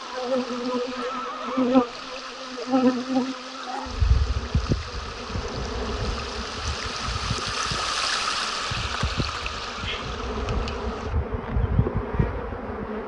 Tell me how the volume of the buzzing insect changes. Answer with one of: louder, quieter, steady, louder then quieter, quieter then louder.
quieter then louder.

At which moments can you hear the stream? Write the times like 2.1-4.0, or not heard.
0.0-11.2.